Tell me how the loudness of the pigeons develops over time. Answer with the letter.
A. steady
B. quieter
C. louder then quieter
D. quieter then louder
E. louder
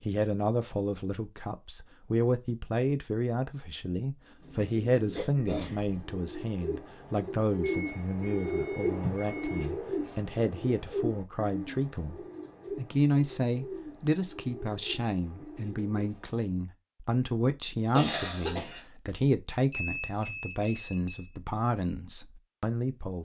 C.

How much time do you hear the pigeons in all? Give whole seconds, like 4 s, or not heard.
12 s.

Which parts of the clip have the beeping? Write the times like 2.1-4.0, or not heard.
7.6-9.7, 19.7-21.3.